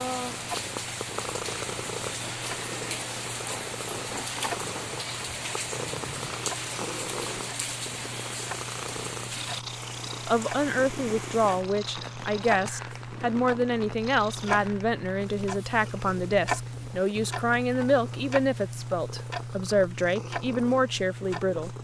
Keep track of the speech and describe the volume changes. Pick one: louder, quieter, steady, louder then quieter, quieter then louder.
steady.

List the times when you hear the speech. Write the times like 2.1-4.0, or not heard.
10.2-21.8.